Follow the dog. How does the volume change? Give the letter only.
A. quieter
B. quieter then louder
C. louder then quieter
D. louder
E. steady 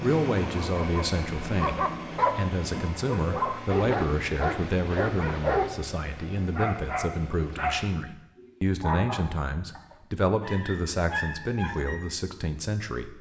A.